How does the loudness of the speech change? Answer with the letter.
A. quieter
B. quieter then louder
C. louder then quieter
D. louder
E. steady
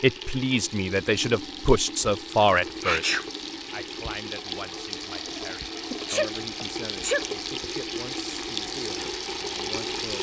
A.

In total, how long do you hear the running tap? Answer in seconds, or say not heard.
10 s.